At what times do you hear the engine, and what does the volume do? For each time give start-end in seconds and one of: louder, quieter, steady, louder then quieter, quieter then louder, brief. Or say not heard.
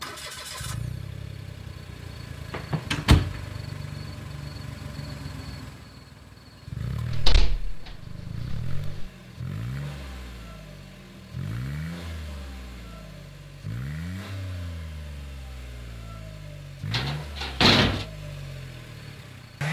0.0-19.6 steady.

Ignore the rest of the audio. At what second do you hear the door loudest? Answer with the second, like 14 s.
18 s.